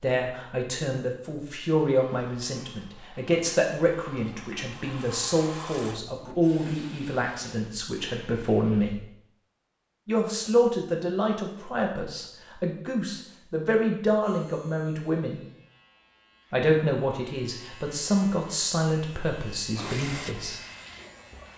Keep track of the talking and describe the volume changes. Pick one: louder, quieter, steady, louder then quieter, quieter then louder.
steady.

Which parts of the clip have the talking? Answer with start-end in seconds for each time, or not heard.
0.0-9.0, 10.1-15.4, 16.5-20.6.